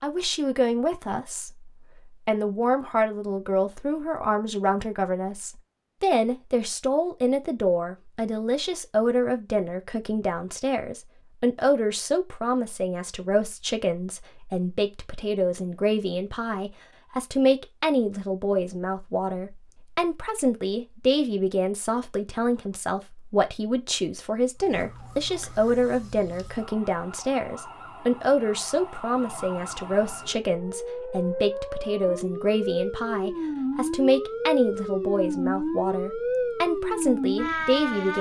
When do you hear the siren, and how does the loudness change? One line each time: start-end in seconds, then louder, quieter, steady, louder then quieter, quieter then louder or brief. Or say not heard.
24.6-38.1 louder.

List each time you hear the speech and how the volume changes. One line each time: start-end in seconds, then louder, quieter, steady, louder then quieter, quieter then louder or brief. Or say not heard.
0.0-38.1 steady.